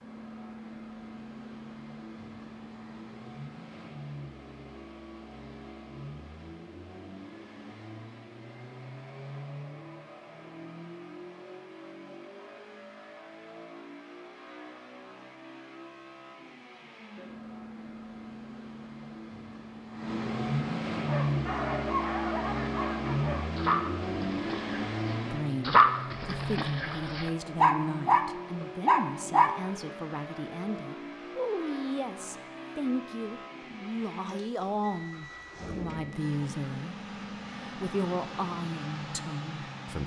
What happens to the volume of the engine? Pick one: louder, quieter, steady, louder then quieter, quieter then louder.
louder then quieter.